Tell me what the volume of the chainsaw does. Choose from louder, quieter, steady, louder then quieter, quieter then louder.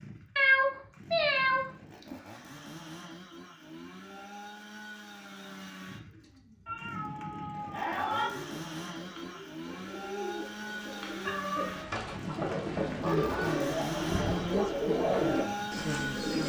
louder.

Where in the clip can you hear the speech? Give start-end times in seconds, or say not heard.
12.9-16.4.